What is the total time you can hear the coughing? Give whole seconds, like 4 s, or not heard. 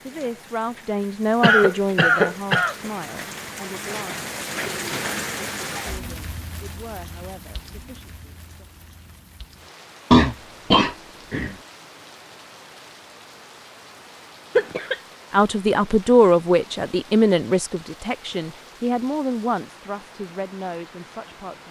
3 s.